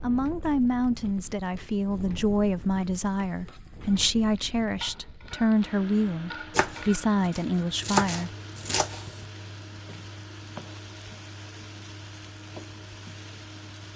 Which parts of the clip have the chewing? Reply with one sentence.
You can't hear the chewing here.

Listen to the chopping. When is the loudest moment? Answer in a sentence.
The loudest moment of the chopping is at 8 seconds.